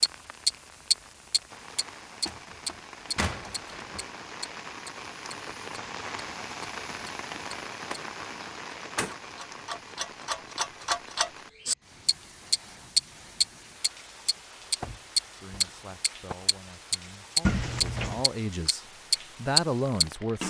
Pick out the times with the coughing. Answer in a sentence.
You can't hear the coughing here.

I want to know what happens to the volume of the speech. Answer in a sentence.
The loudness of the speech goes up.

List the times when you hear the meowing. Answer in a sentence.
The meowing can be heard from 17.4 to 18.2 s.